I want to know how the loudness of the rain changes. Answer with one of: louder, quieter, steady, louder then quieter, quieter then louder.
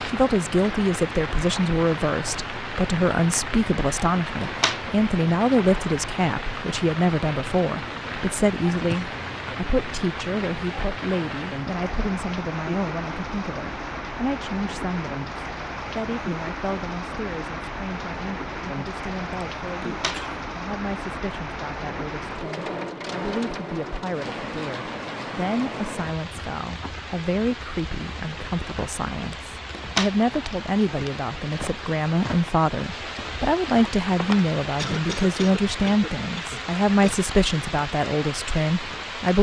steady.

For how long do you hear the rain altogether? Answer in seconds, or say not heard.
39 s.